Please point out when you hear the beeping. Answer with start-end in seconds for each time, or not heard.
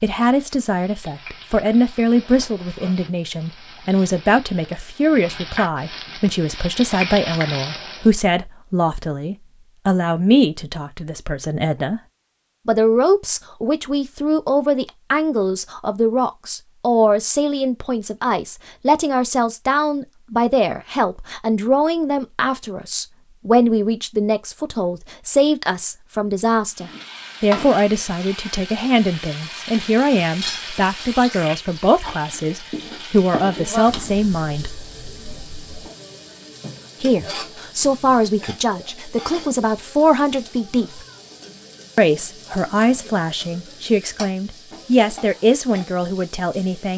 not heard.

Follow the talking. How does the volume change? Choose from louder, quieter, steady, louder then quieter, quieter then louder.
steady.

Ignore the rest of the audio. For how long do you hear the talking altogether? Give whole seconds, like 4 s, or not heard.
43 s.